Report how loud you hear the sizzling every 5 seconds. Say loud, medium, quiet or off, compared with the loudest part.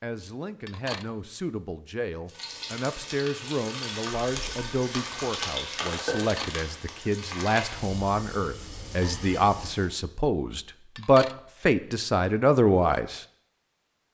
loud, loud, off.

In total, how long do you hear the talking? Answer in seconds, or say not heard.
13 s.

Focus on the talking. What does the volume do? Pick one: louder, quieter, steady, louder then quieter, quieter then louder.
louder.